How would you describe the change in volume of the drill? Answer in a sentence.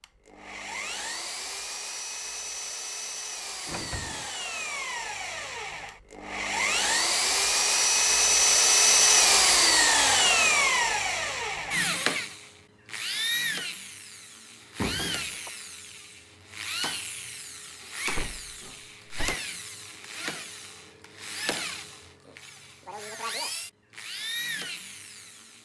The volume of the drill goes up, then down.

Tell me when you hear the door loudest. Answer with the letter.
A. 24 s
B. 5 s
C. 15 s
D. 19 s
C.